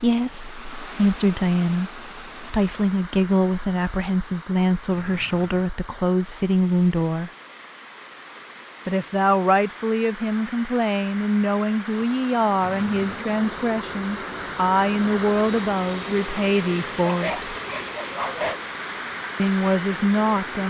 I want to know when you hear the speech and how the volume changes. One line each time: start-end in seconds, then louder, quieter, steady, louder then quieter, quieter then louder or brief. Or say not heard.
0.0-7.3 steady
8.8-17.4 steady
19.4-20.6 brief.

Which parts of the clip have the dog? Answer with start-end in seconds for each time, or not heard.
17.1-18.6.